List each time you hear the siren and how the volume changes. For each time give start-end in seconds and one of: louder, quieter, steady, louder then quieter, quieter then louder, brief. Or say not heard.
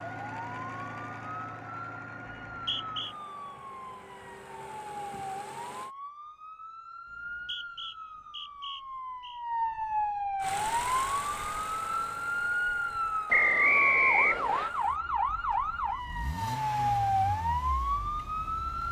0.2-18.8 louder.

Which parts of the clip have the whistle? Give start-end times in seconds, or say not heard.
2.5-3.1, 7.0-9.4, 13.3-14.7.